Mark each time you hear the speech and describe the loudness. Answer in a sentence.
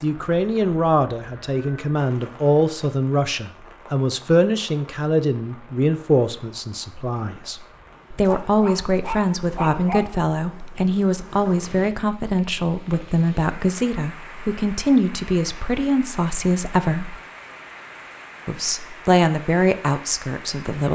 The speech can be heard from 0.0 to 17.1 s, at a steady volume; and briefly from 18.4 to 20.8 s.